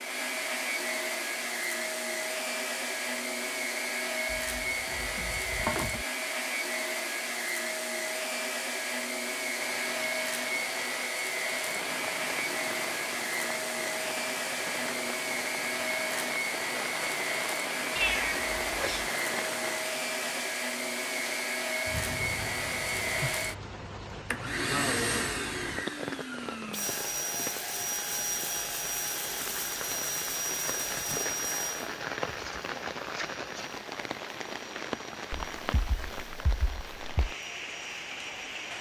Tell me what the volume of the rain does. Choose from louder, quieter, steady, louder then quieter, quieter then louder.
steady.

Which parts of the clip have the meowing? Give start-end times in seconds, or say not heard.
4.3-6.0, 17.9-19.1, 35.3-37.4.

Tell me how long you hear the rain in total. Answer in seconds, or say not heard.
29 s.